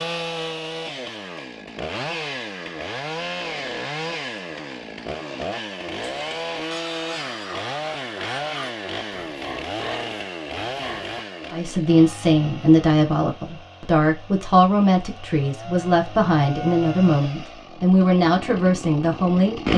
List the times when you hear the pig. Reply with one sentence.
You can hear the pig from 6.0 to 11.2 s.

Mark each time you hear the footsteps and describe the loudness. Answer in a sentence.
The footsteps can't be heard in this clip.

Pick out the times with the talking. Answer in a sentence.
The talking can be heard from 11.5 to 19.7 s.